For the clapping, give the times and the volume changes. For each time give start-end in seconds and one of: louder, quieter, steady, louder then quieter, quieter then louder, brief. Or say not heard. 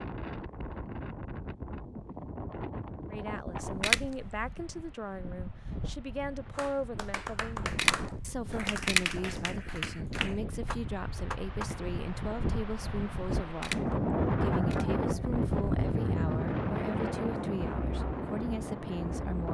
6.5-11.7 steady.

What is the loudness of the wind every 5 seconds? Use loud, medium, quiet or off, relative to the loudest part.
medium, medium, loud, loud.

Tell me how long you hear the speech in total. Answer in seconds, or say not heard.
16 s.